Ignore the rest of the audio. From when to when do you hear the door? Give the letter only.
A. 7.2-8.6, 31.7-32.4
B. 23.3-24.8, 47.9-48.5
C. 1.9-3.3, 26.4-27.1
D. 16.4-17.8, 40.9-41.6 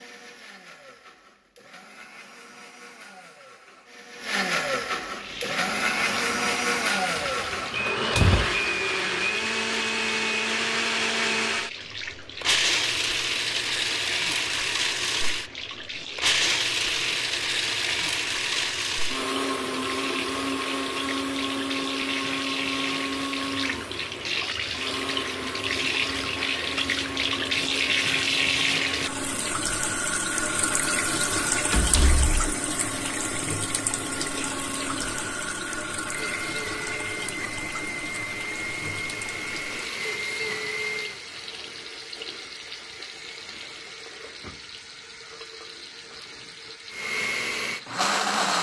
A.